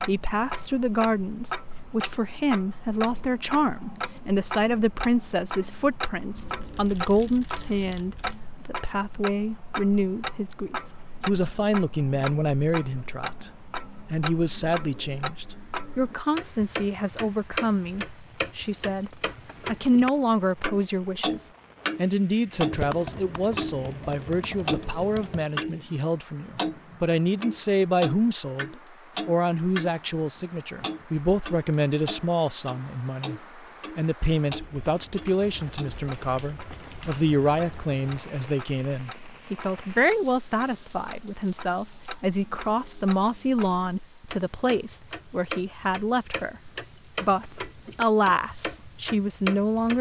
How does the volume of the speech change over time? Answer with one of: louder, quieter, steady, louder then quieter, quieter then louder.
steady.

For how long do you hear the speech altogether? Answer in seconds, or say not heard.
49 s.